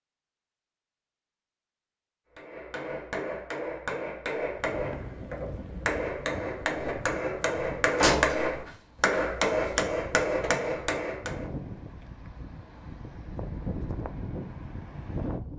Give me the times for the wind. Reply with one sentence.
The wind can be heard from 4.5 to 15.5 s.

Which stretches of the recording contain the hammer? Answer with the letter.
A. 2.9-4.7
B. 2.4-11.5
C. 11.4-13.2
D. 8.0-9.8
B.